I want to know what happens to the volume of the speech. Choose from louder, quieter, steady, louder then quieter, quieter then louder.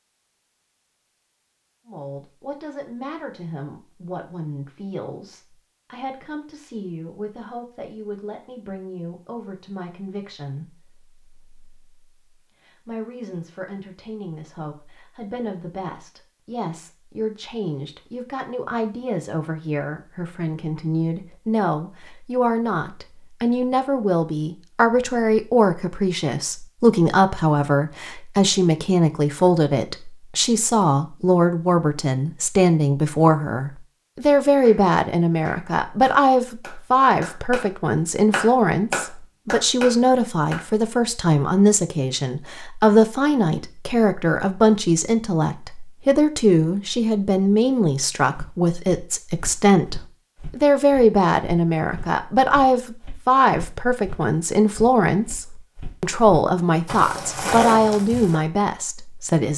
louder.